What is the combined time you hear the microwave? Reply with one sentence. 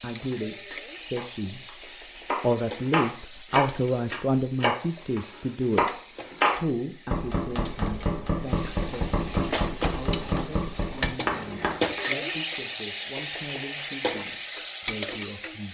You can't hear the microwave here.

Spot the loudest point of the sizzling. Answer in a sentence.
The volume of the sizzling peaks at 12 seconds.